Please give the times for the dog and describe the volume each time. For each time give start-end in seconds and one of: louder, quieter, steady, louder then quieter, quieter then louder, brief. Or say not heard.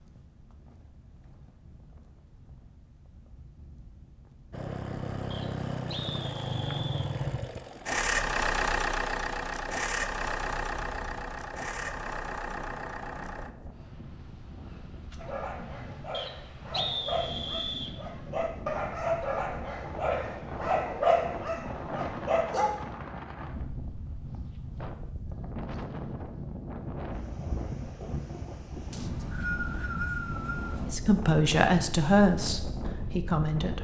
15.2-22.8 louder.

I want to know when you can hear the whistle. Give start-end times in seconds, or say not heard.
5.3-7.1, 16.1-17.9, 28.9-30.8.